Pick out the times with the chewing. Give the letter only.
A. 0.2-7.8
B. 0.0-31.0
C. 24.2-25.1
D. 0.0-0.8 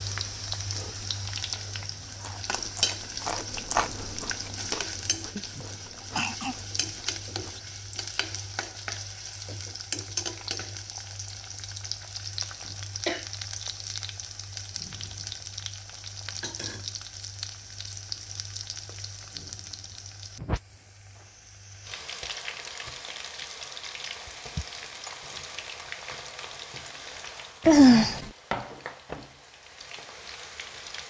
A.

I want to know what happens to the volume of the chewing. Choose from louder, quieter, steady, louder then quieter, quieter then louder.
louder then quieter.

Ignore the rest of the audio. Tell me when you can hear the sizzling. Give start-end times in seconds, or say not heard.
0.0-31.0.